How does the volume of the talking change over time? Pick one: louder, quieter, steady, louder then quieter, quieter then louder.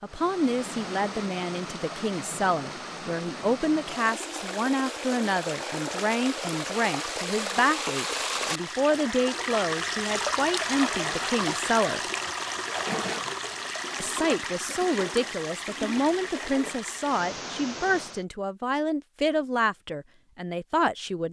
steady.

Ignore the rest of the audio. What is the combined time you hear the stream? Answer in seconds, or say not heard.
18 s.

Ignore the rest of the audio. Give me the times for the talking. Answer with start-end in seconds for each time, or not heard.
0.0-12.0, 14.0-21.2.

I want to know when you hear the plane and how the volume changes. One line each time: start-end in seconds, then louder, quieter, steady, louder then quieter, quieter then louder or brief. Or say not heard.
not heard.